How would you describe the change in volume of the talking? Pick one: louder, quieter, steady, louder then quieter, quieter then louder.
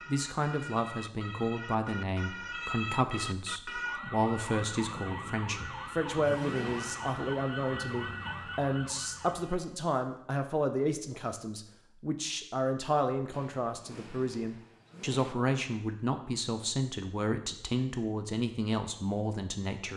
steady.